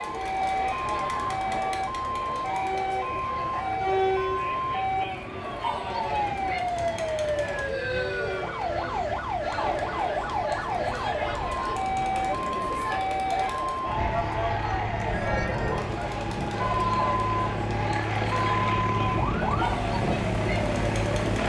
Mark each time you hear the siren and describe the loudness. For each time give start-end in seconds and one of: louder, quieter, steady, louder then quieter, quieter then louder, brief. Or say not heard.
0.0-21.4 steady.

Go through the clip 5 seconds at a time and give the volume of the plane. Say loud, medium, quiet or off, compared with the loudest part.
quiet, quiet, medium, loud, loud.